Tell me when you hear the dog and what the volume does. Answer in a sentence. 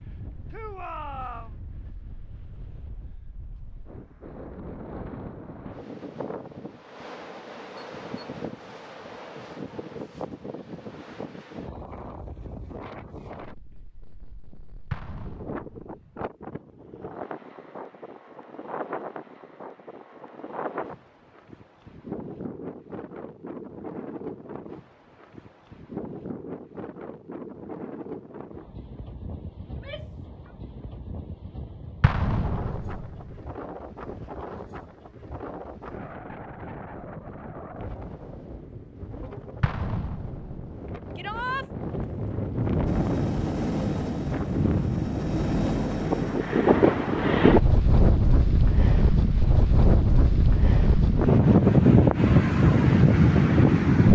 You can't hear the dog here.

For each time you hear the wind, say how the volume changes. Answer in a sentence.
The wind can be heard from 0.0 to 54.0 s, getting louder.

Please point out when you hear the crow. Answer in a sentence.
You can't hear the crow here.